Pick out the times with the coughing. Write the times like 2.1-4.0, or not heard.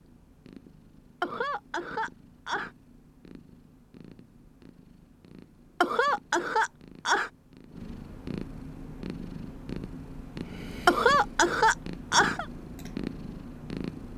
1.2-2.7, 5.8-7.3, 10.8-12.4.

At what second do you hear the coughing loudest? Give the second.
11 s.